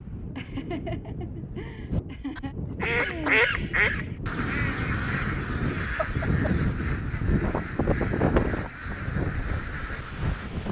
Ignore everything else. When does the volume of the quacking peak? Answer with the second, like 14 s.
3 s.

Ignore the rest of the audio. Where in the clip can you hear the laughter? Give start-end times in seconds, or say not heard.
0.3-2.5, 6.0-6.7.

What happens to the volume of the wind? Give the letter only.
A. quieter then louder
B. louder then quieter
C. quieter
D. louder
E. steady
D.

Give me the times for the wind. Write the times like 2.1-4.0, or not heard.
0.0-10.6.